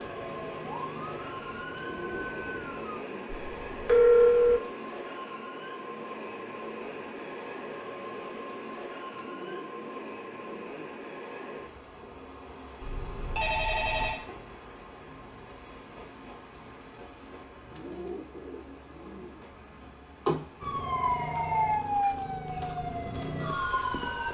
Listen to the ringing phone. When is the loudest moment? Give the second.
4 s.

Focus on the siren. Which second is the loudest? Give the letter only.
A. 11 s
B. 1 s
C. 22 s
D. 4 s
C.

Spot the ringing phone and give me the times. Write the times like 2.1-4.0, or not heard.
3.3-4.6, 12.8-14.2, 20.2-21.8.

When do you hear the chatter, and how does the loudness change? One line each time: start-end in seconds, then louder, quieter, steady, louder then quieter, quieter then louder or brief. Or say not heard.
not heard.